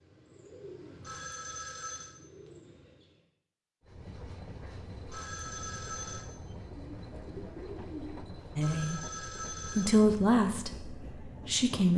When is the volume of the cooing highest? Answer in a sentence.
The loudest moment of the cooing is at 8 seconds.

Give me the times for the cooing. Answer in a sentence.
You can hear the cooing from 0.0 to 3.2 s and from 6.7 to 8.5 s.